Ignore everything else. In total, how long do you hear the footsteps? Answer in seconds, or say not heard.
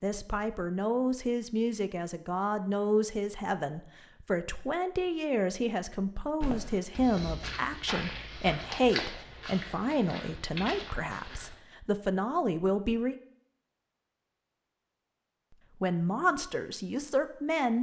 5 s.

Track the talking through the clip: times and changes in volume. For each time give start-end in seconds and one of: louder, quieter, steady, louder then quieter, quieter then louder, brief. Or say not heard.
0.0-13.2 steady
15.8-17.7 brief.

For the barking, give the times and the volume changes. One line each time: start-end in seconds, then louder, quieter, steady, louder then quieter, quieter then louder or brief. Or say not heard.
not heard.